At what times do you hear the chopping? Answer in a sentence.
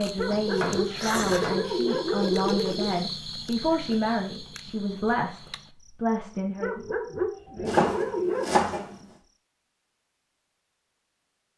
You can hear the chopping from 0.3 to 1.8 s and from 7.7 to 8.8 s.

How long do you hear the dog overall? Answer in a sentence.
The dog can be heard for 5 seconds in total.